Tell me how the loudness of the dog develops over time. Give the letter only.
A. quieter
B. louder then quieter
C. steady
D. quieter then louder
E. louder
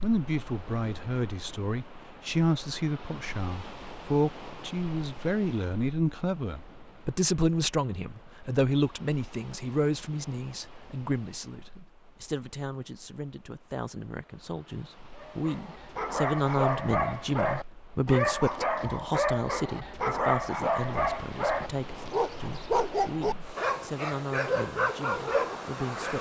C.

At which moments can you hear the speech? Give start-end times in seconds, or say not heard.
0.0-26.1.